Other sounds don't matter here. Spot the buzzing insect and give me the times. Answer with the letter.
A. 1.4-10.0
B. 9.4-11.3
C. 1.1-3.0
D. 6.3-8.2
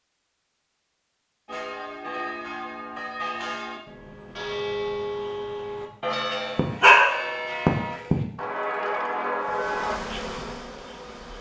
B.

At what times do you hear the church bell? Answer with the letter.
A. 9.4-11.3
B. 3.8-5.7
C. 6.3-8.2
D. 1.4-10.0
D.